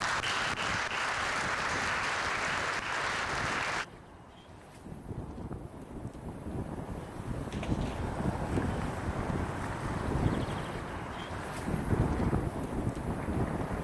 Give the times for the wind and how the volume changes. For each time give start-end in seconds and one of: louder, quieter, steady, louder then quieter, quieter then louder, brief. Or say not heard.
0.0-13.7 louder.